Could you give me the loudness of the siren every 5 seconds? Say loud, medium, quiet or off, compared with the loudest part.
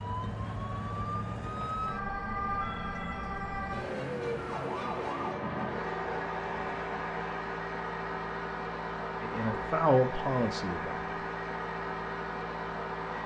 loud, loud, off.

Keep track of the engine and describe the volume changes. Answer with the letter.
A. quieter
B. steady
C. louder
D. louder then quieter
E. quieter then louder
C.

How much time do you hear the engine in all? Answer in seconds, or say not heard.
13 s.